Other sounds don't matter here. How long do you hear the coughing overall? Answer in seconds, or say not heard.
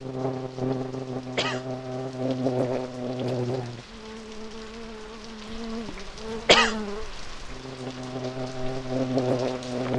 2 s.